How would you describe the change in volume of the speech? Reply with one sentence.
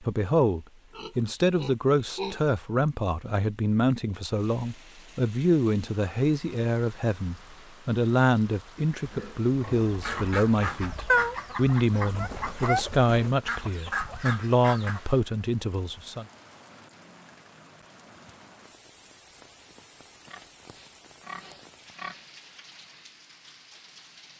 The volume of the speech stays about the same.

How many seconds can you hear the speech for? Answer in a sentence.
You can hear the speech for 16 seconds altogether.